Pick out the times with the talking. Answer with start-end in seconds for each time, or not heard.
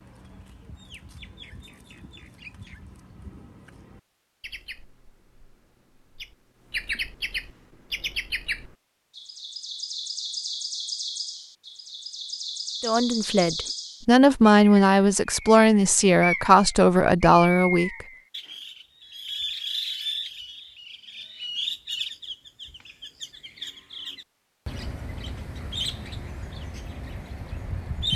12.8-18.1.